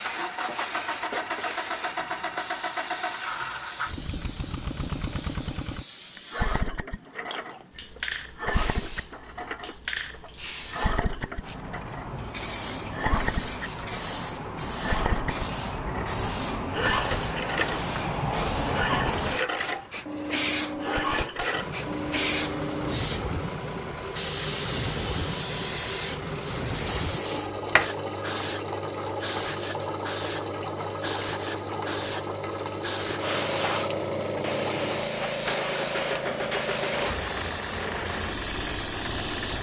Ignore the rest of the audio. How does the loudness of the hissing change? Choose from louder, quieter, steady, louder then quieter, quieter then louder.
louder.